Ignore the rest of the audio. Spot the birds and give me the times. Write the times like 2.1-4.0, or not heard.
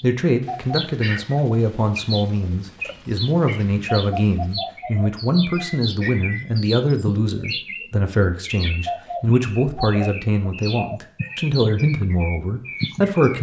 0.0-13.3.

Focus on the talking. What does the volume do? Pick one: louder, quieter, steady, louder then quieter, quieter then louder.
steady.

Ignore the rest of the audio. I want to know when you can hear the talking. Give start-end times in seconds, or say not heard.
0.0-13.3.